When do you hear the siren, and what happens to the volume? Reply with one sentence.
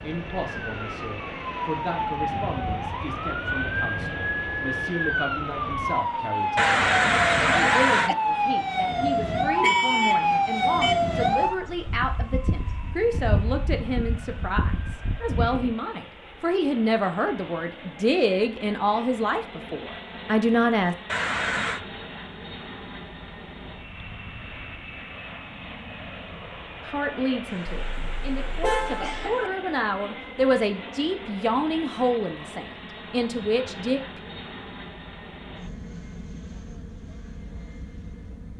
You can hear the siren from 0.0 to 15.8 s, getting louder then quieter.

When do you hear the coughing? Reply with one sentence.
The coughing can be heard from 6.5 to 8.2 s, from 21.1 to 21.8 s and from 27.4 to 29.5 s.